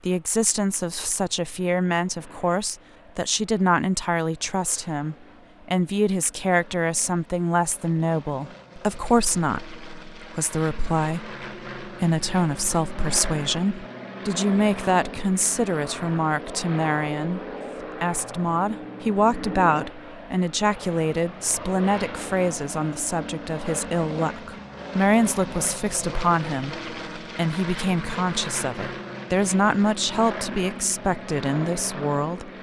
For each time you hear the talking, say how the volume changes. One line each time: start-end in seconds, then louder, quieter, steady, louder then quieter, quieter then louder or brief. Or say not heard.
0.1-32.5 steady.